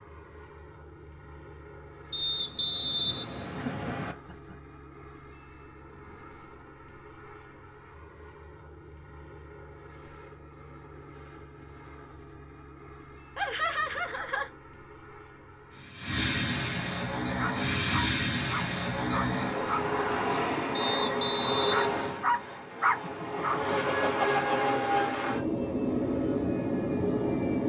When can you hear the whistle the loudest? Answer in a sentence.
The volume of the whistle peaks at 3 seconds.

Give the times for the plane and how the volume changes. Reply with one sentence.
You can hear the plane from 0.0 to 27.6 s, getting louder.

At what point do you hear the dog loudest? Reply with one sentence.
The loudest moment of the dog is at 23 seconds.